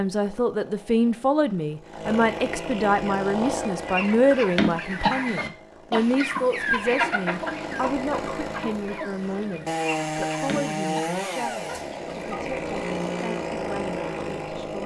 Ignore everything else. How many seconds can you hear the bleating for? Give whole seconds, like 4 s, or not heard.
not heard.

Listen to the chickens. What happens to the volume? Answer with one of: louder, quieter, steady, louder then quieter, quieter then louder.
quieter.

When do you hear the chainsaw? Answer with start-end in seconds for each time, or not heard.
0.0-14.8.